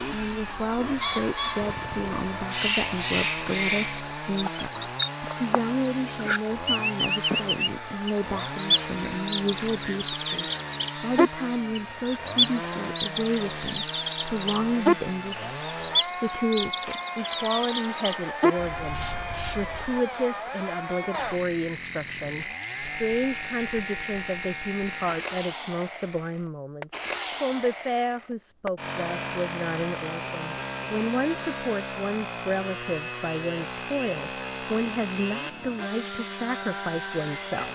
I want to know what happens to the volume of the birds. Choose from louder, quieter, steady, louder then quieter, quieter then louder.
steady.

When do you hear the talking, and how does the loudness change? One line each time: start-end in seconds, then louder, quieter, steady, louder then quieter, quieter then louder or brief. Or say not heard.
0.1-37.7 steady.